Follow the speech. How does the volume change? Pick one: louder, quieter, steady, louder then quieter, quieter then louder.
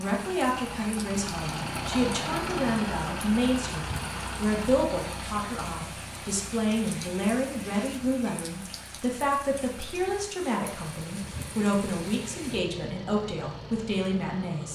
steady.